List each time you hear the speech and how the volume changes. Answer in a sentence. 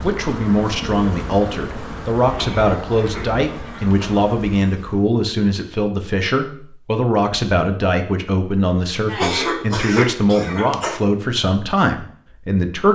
You can hear the speech from 0.0 to 12.9 s, at a steady volume.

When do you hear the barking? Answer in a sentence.
You can't hear the barking here.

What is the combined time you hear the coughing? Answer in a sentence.
You can hear the coughing for 4 seconds altogether.